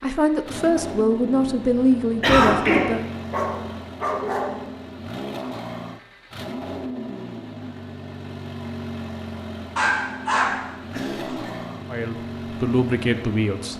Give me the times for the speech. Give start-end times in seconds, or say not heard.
0.0-3.0, 11.9-13.7.